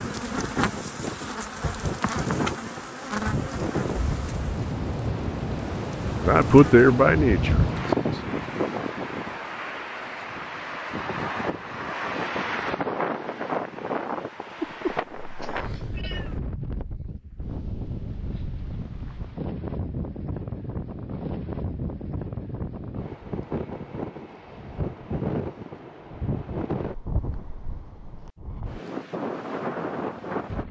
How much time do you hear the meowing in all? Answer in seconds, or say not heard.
2 s.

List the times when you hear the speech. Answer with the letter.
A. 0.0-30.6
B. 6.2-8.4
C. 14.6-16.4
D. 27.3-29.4
B.